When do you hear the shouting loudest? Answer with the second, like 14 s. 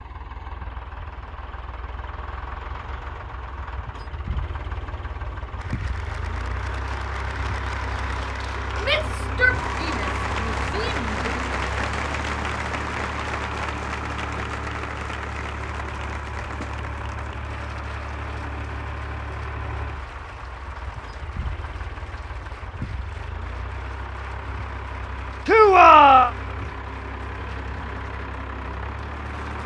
26 s.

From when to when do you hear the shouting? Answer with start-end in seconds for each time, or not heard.
8.8-11.5, 25.4-26.3.